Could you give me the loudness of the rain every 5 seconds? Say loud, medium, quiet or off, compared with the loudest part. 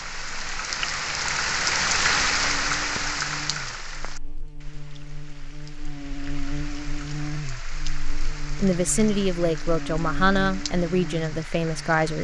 loud, quiet, quiet.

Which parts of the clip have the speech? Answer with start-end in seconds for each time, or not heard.
8.6-12.1.